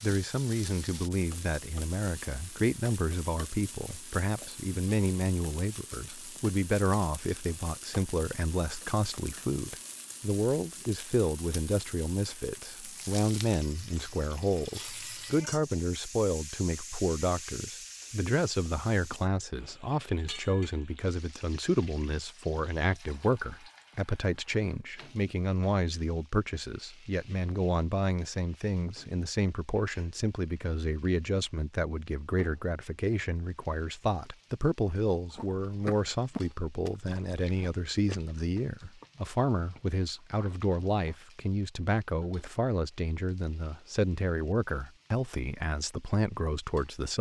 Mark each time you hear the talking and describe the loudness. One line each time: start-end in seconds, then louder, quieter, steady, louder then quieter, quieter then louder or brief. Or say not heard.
0.0-47.1 steady.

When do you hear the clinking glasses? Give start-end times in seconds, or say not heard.
not heard.